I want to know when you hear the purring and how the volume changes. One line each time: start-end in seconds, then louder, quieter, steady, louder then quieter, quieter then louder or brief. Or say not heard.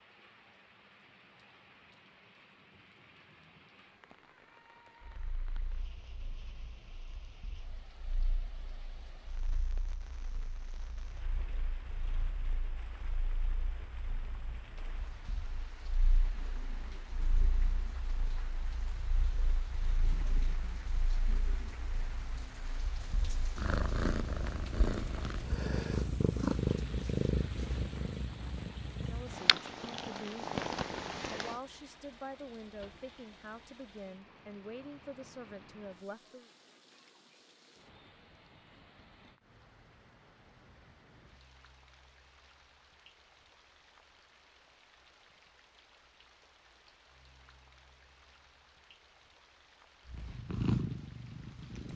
5.0-31.6 louder
50.0-51.9 brief.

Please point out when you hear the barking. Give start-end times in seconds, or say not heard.
not heard.